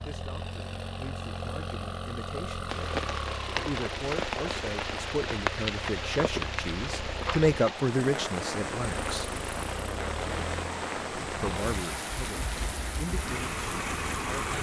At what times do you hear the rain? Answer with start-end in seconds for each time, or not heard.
2.6-14.5.